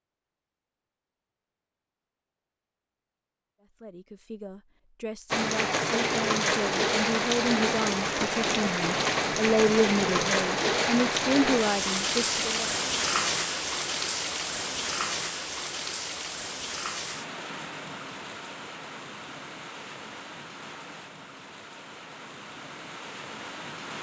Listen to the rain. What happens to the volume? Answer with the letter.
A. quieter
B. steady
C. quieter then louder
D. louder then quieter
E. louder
A.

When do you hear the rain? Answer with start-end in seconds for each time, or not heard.
5.3-23.9.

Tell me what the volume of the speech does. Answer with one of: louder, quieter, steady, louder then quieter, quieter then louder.
louder.